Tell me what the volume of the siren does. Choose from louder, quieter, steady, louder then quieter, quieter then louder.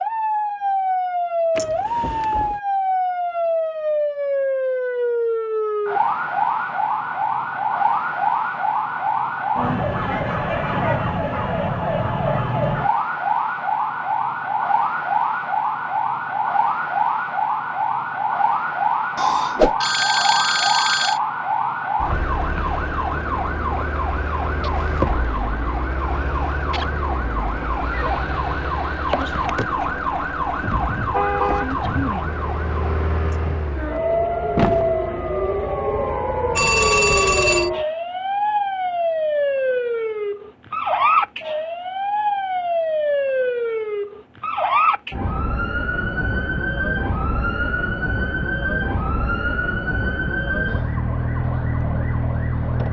steady.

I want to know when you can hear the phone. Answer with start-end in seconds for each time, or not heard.
19.1-21.2, 36.5-37.7.